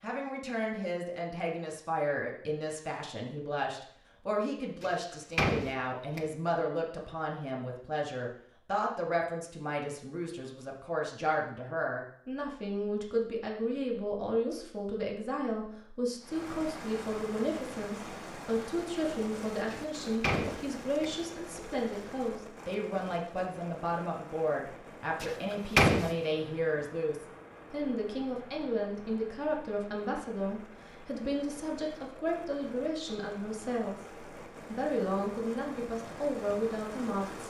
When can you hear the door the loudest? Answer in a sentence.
The volume of the door peaks at 26 seconds.